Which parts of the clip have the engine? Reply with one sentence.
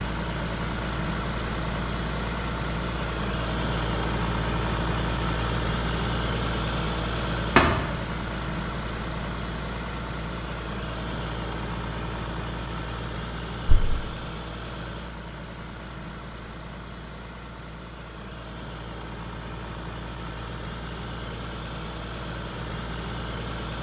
The engine can be heard from 0.0 to 23.7 s.